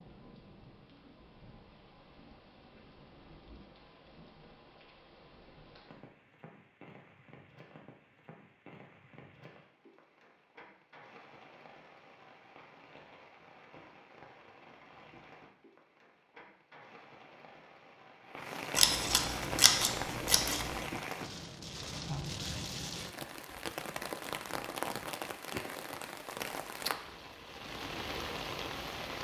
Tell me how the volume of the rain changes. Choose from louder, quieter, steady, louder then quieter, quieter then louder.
louder.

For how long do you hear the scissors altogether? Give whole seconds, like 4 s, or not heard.
2 s.